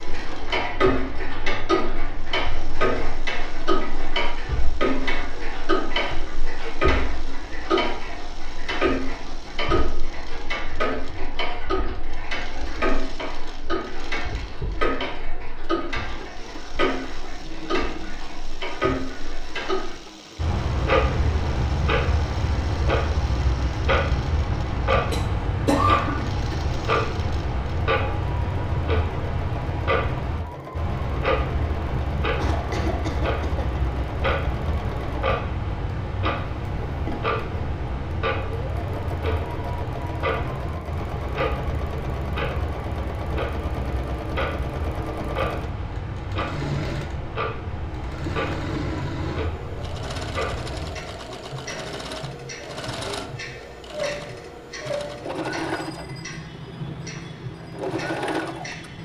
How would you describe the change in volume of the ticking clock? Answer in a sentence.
The volume of the ticking clock goes down.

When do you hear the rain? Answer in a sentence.
The rain can't be heard in this clip.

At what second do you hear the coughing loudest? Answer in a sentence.
The volume of the coughing peaks at 26 seconds.